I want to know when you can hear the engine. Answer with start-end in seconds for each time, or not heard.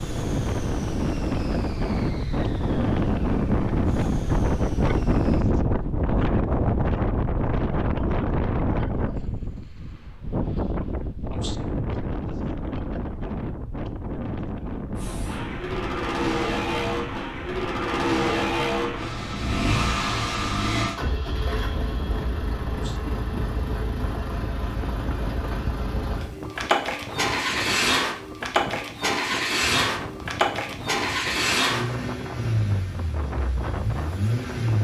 0.0-5.5, 14.9-34.8.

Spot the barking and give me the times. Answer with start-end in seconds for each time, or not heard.
not heard.